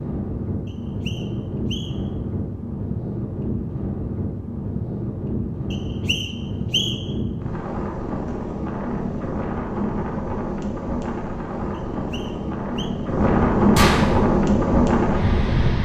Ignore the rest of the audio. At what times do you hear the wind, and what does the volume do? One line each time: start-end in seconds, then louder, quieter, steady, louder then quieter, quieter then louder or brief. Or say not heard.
0.0-15.8 louder.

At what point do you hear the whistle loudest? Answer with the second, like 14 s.
7 s.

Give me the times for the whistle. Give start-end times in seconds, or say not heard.
0.7-2.1, 5.7-7.2, 11.7-12.9.